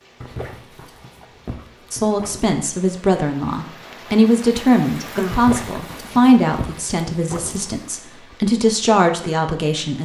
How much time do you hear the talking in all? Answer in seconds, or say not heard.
8 s.